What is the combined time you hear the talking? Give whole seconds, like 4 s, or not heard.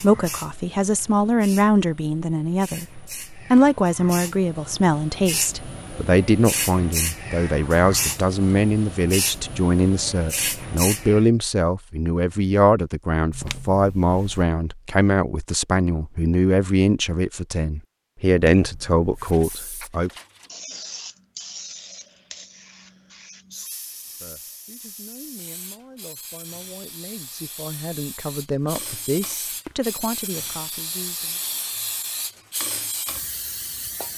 27 s.